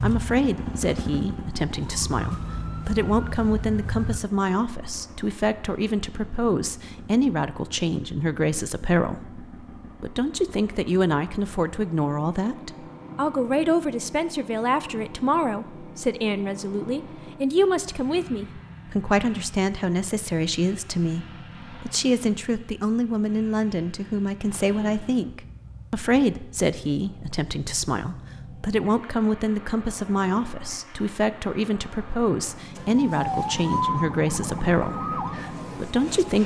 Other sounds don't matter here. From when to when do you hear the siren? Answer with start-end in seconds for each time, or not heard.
0.0-4.2, 32.8-36.4.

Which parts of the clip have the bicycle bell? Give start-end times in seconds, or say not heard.
not heard.